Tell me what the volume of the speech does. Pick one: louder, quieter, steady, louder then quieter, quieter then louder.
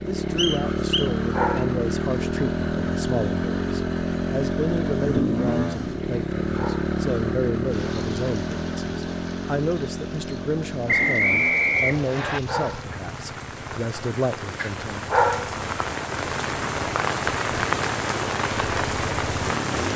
steady.